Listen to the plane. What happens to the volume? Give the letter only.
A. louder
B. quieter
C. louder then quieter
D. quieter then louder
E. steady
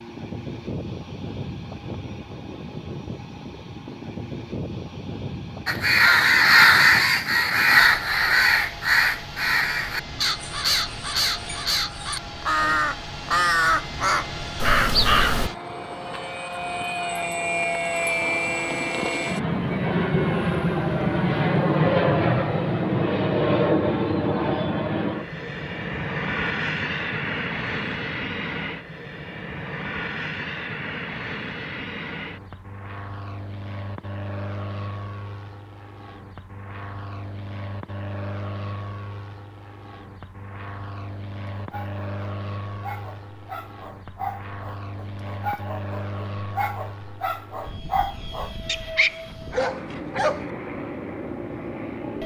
C.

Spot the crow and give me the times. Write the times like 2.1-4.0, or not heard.
5.7-15.5.